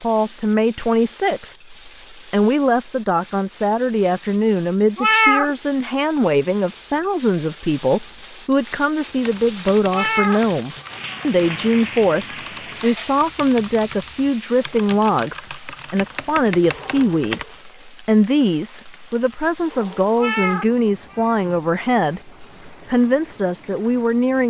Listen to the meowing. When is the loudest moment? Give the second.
5 s.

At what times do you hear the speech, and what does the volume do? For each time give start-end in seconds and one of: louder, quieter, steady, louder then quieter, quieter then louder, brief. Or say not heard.
0.0-24.4 steady.